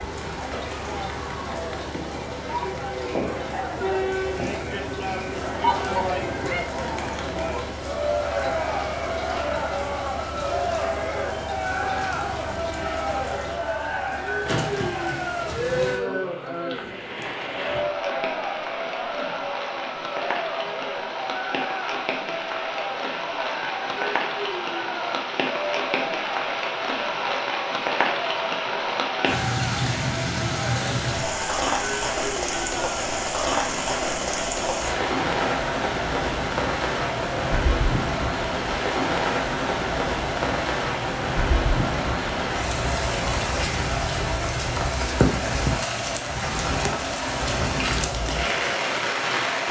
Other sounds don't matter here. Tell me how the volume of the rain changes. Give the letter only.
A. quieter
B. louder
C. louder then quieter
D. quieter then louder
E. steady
B.